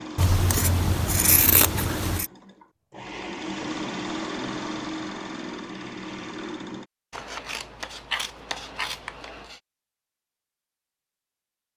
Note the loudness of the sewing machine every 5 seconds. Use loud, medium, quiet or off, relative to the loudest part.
loud, loud, off.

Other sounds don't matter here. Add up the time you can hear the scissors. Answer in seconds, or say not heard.
5 s.